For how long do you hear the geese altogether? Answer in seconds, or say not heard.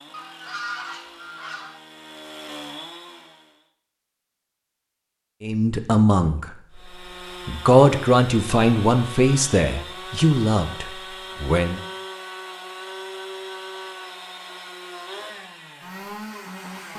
2 s.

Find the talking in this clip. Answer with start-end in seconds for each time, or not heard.
5.4-11.8.